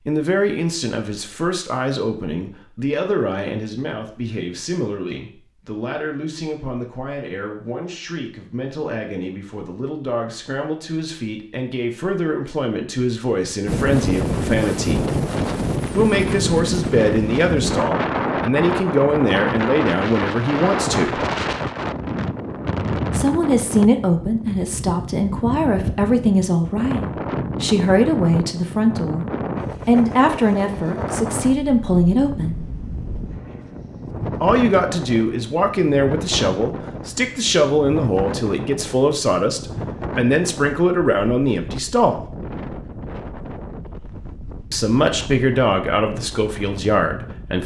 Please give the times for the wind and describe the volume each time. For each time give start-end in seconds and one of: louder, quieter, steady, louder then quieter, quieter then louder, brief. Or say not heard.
13.7-47.6 quieter.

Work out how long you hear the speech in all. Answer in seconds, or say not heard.
40 s.